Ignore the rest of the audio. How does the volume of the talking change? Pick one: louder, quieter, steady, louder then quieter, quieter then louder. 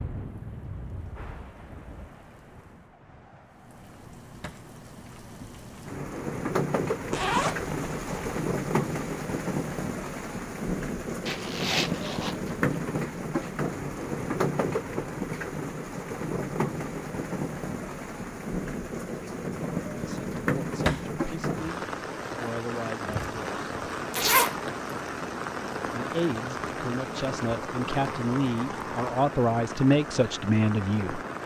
louder.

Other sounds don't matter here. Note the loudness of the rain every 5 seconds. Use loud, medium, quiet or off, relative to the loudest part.
quiet, loud, loud, loud, loud, loud, medium.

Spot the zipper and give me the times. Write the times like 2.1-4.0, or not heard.
7.1-8.2, 11.2-12.5, 24.1-24.6.